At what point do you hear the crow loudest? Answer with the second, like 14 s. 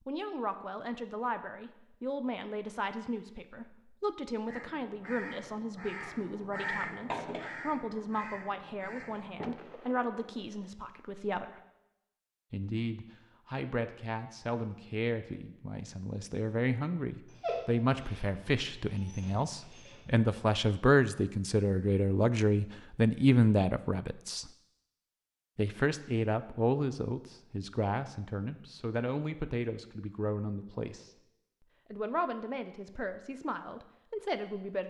7 s.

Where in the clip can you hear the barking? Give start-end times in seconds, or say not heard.
17.2-20.1.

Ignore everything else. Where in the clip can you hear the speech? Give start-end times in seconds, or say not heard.
0.1-11.6, 12.5-24.5, 25.6-31.1, 31.9-34.8.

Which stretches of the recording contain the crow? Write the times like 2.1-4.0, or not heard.
4.5-9.6.